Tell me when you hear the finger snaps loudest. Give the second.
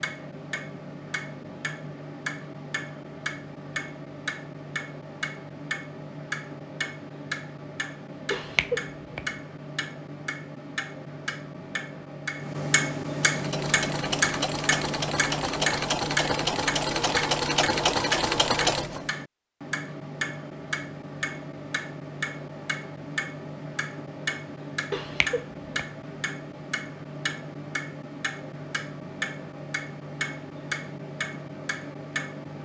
9 s.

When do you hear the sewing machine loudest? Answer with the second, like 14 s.
18 s.